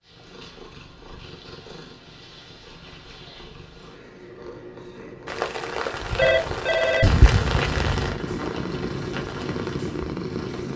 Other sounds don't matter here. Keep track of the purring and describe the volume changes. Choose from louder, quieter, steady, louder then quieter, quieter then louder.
louder.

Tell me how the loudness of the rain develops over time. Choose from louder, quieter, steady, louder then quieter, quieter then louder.
louder then quieter.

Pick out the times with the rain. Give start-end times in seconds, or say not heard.
5.2-10.7.